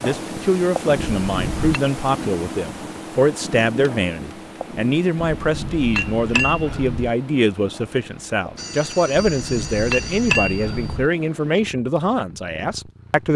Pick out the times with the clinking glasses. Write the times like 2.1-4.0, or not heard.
1.0-1.8, 5.2-7.1, 9.2-11.1.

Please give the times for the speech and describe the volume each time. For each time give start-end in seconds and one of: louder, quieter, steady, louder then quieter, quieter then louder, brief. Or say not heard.
0.0-13.3 steady.